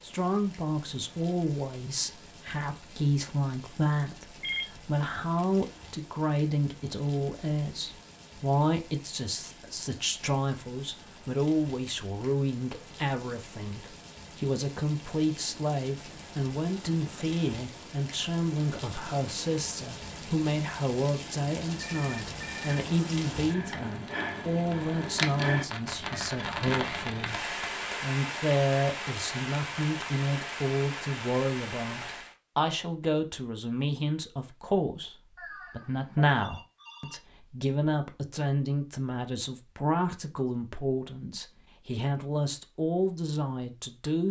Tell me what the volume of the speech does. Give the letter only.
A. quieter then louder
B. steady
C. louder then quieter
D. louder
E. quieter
B.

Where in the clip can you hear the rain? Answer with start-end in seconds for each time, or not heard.
0.0-32.4.